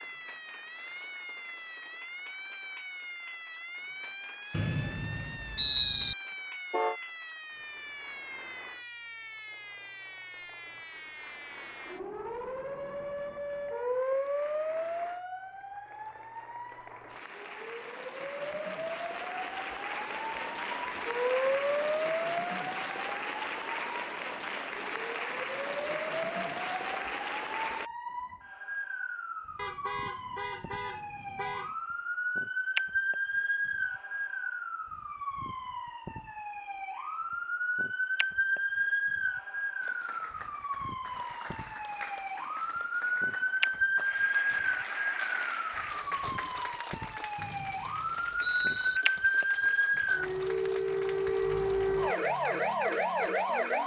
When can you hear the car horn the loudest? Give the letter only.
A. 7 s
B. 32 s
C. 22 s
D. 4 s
A.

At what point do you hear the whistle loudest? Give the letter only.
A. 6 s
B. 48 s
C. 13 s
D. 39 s
A.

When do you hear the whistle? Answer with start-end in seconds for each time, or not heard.
4.5-6.2, 47.4-49.0.